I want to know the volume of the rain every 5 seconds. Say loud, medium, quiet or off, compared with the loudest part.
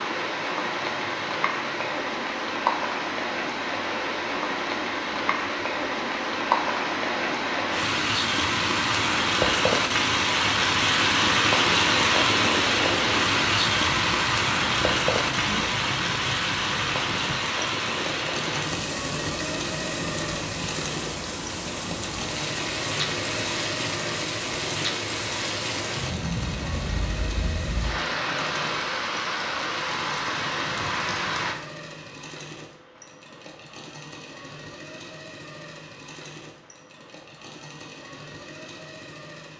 medium, loud, loud, medium, medium, medium, medium, off.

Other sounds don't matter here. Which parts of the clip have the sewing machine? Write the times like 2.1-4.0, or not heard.
0.0-39.5.